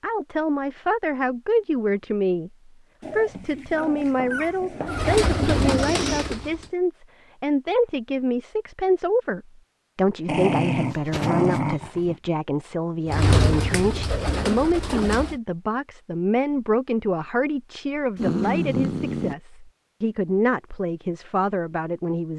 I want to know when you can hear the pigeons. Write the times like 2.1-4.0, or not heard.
4.8-6.7, 13.1-15.3.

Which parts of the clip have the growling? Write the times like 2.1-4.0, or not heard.
3.0-5.2, 10.2-12.2, 18.1-19.4.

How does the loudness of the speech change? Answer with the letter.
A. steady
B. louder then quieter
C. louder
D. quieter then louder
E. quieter
A.